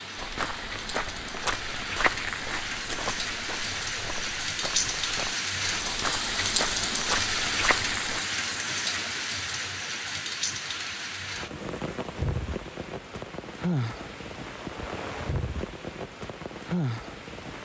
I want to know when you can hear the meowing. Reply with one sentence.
You can't hear the meowing here.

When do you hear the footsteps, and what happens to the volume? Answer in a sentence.
You can hear the footsteps from 0.1 to 8.2 s, getting quieter then louder.